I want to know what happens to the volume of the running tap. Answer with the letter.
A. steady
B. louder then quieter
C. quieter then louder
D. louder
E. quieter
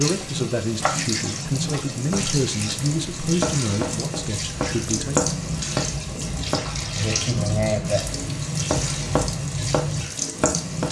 A.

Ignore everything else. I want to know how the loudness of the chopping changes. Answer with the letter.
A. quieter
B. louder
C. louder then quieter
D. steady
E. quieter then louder
B.